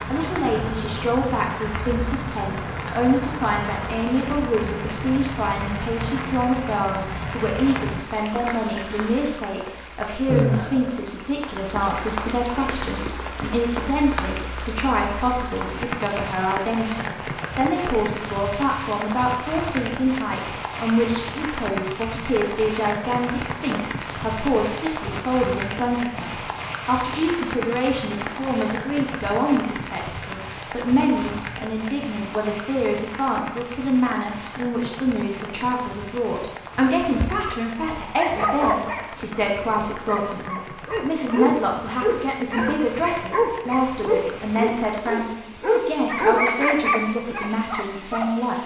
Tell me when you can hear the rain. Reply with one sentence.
You can hear the rain from 0.0 to 48.6 s.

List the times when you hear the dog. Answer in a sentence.
The dog can be heard from 37.0 to 48.3 s.